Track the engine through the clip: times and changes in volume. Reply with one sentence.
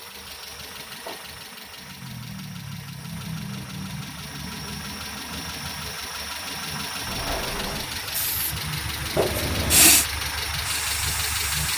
You can hear the engine from 0.0 to 11.7 s, getting louder.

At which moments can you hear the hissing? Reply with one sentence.
The hissing can be heard from 7.8 to 11.7 s.